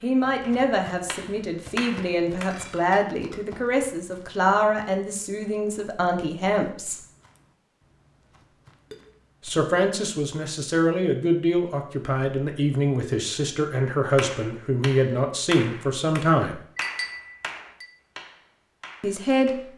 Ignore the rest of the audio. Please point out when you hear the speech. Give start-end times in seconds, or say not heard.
0.0-7.0, 9.4-16.6, 19.0-19.6.